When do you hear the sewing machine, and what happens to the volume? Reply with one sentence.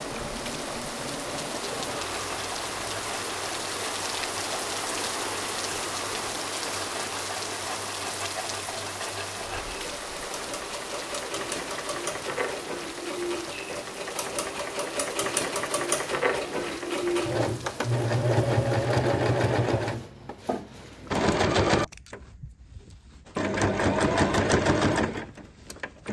You can hear the sewing machine from 0.0 to 26.0 s, getting louder.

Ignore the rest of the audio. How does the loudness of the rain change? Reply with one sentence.
The volume of the rain goes down.